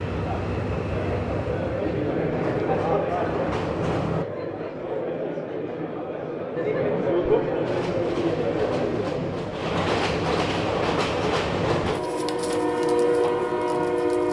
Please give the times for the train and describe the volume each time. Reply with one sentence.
You can hear the train from 0.0 to 4.2 s, getting quieter then louder; and from 7.6 to 14.2 s, getting louder.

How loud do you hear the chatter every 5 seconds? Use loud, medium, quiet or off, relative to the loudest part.
loud, loud, medium.